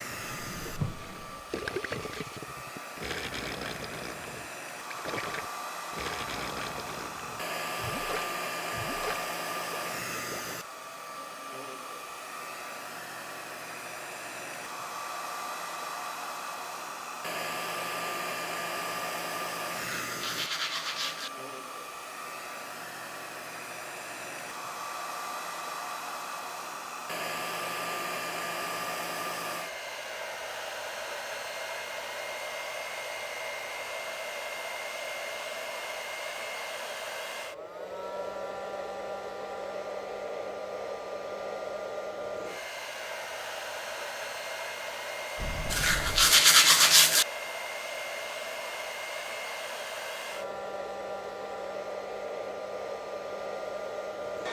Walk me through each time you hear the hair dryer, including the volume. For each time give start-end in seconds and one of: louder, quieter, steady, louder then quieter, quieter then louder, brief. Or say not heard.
0.0-54.4 steady.